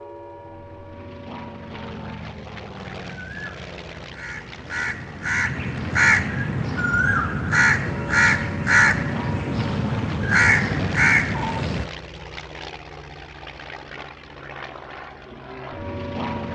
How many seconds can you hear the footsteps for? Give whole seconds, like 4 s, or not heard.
not heard.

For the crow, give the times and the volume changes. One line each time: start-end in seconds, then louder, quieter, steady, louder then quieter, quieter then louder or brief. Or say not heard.
3.0-11.8 louder.